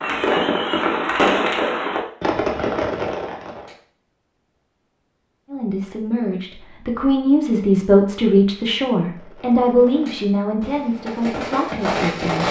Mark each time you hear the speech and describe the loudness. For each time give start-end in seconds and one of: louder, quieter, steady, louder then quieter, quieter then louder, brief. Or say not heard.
5.5-12.4 louder then quieter.